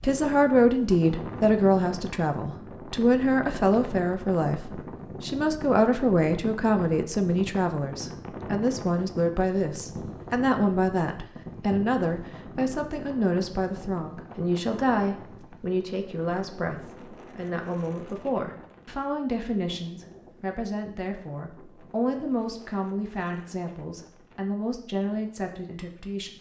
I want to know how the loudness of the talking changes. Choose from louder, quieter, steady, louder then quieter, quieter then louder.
quieter.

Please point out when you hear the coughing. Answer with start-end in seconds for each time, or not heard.
not heard.